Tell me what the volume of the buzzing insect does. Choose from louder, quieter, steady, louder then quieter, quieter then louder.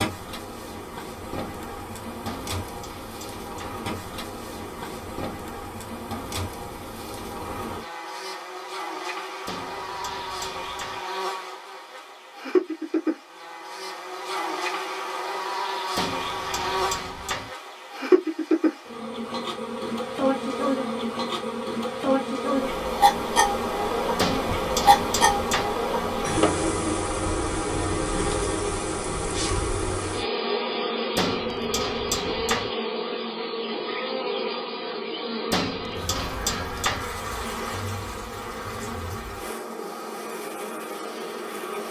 louder then quieter.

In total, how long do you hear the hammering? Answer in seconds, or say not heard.
9 s.